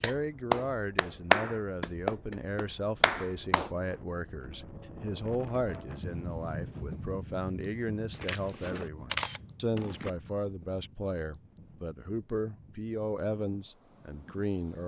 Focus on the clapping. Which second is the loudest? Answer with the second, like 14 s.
1 s.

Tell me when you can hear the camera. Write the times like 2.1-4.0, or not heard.
8.1-10.1.